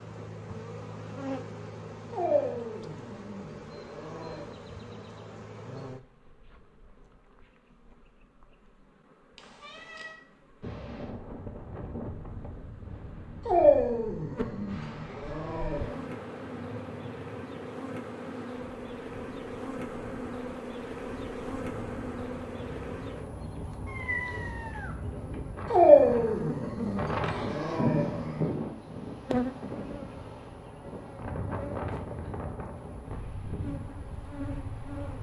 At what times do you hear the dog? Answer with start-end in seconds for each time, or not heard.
2.1-4.5, 13.4-16.0, 25.7-28.4.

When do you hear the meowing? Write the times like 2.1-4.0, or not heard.
9.3-10.2, 23.9-25.0.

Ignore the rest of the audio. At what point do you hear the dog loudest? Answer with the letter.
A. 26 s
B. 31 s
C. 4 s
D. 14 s
A.